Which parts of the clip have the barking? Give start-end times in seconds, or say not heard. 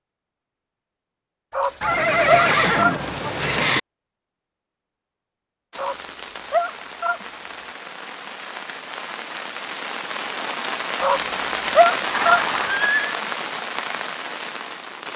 1.5-3.0, 5.8-7.7, 11.0-12.4.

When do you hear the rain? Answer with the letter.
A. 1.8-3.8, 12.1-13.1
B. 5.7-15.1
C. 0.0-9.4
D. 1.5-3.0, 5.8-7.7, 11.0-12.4
B.